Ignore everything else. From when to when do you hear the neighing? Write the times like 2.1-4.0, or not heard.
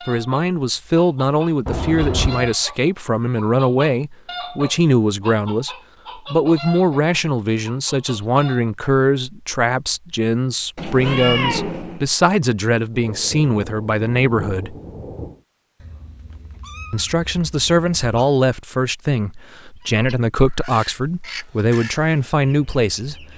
not heard.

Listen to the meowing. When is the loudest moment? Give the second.
11 s.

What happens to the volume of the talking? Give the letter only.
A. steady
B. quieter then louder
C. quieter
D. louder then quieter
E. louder
A.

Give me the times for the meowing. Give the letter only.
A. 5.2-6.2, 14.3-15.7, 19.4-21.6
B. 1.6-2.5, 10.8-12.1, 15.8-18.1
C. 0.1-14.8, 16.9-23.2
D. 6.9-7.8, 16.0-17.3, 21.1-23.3
B.